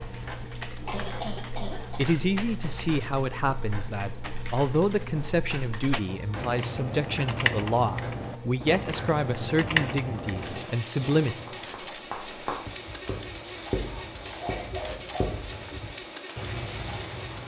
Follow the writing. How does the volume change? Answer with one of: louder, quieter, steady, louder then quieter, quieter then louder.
quieter then louder.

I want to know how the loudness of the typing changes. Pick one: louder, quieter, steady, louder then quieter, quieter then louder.
louder.